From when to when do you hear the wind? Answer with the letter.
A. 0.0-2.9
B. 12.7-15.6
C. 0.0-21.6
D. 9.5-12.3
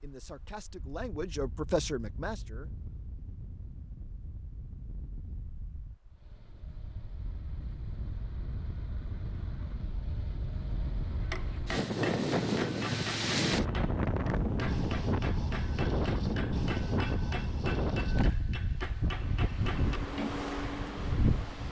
C.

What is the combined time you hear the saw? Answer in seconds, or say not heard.
not heard.